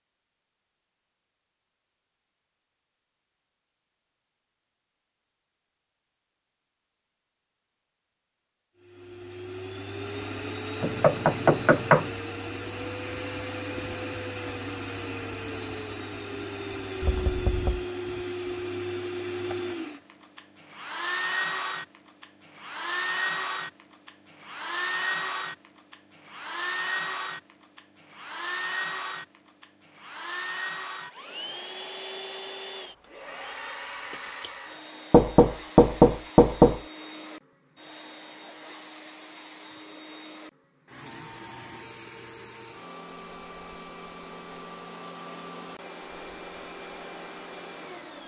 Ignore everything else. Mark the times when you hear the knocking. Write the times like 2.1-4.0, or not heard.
10.8-12.1, 17.0-17.9, 35.1-36.8.